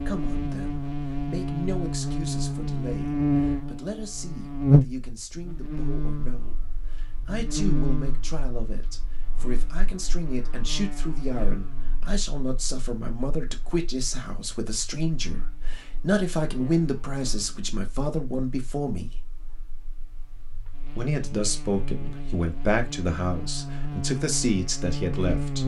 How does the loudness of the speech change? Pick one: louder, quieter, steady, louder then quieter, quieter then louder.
louder.